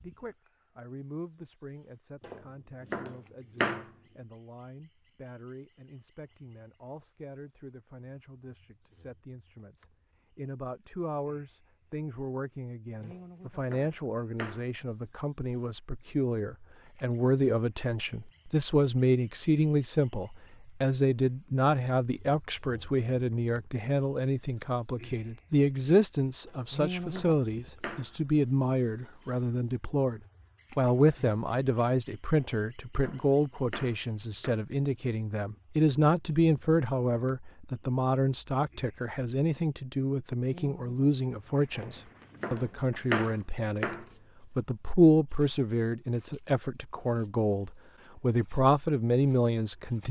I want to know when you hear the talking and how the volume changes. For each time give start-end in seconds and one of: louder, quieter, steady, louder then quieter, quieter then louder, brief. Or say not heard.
0.0-50.0 louder.